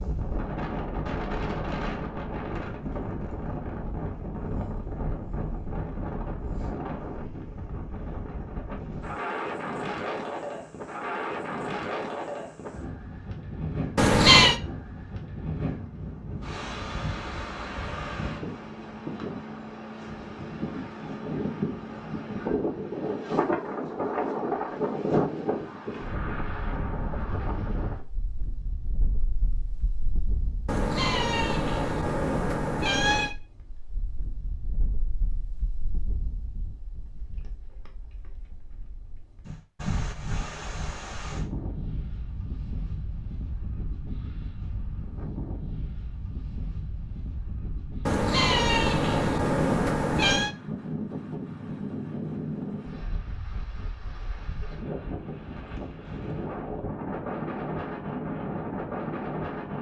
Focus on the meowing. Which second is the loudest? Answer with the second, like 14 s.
14 s.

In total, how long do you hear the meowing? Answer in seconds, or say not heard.
6 s.